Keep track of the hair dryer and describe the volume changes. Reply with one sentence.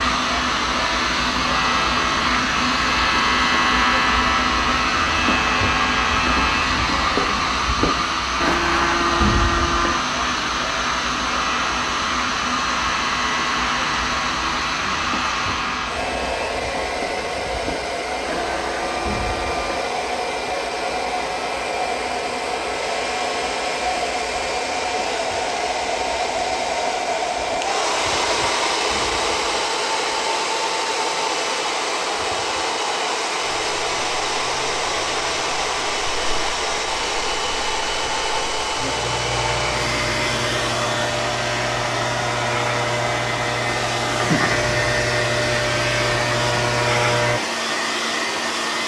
The volume of the hair dryer stays about the same.